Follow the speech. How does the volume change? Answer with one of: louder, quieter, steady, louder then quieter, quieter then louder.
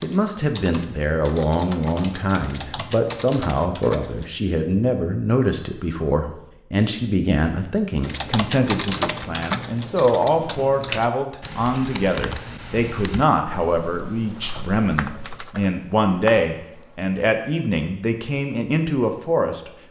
steady.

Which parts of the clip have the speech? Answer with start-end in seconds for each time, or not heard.
0.0-19.7.